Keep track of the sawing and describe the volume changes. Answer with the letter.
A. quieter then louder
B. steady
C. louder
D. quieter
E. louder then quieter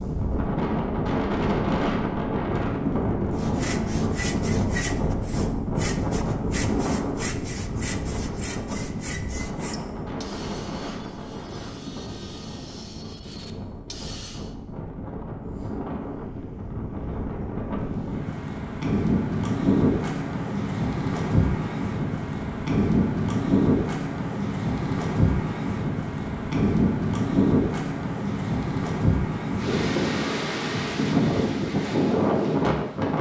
D.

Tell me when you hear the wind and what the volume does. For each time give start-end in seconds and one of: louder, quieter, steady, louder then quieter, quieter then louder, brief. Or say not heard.
0.0-33.1 quieter then louder.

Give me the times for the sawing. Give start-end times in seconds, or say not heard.
3.4-14.6.